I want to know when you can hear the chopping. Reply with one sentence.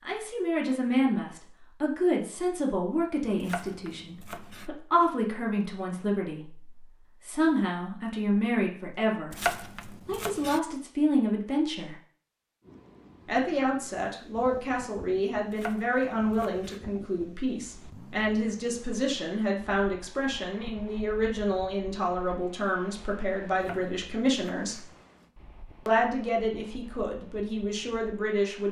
The chopping can be heard from 3.4 to 4.7 s, from 9.3 to 10.6 s, from 15.5 to 16.8 s and from 23.6 to 24.9 s.